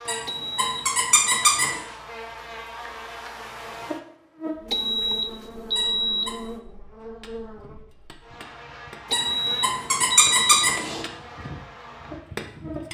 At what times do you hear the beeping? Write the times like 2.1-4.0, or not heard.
0.2-1.5, 4.7-6.5, 9.1-10.8.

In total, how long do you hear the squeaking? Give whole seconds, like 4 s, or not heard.
4 s.